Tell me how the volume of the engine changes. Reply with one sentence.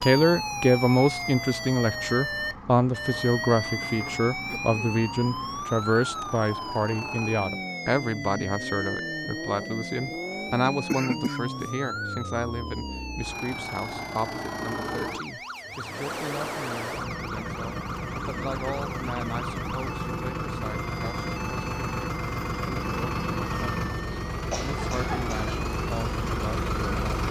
The volume of the engine goes up.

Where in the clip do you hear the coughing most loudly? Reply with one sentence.
The loudest moment of the coughing is at 11 seconds.